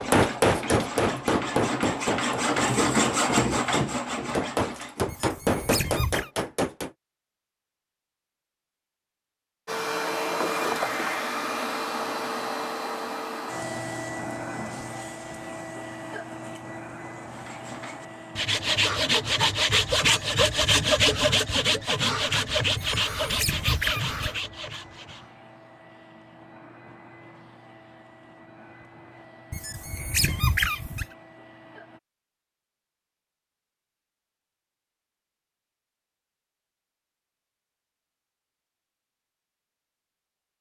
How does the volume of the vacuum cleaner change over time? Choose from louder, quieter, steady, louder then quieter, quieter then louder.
quieter.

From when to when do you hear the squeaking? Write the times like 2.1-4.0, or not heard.
5.0-6.3, 22.8-24.4, 29.5-31.1.